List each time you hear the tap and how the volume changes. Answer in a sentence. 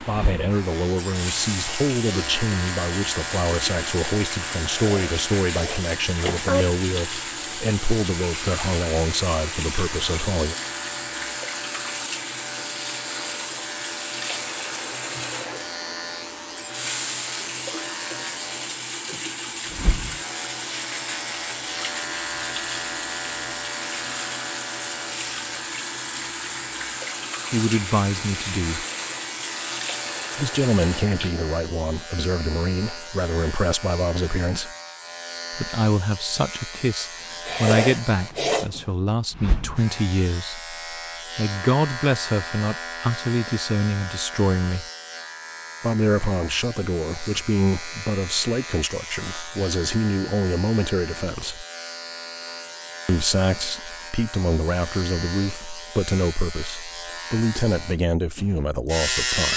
You can hear the tap from 0.0 to 31.5 s, at a steady volume.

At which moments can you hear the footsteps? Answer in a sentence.
You can't hear the footsteps here.